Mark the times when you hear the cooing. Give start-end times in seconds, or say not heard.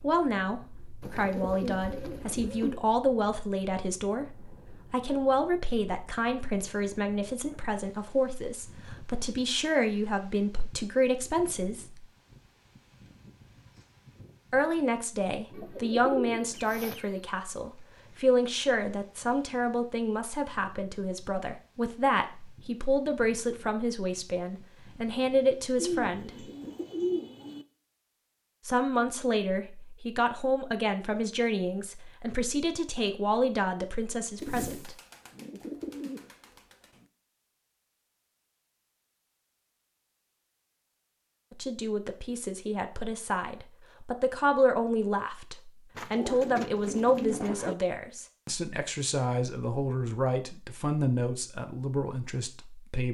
1.0-2.8, 15.5-17.2, 25.8-27.6, 34.4-36.9, 46.0-47.8.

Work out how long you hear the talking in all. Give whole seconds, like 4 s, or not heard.
42 s.